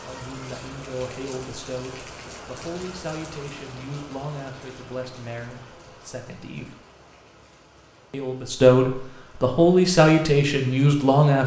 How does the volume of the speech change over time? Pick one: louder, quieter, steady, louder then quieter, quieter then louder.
louder.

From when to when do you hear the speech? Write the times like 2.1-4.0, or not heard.
0.0-6.8, 8.1-11.4.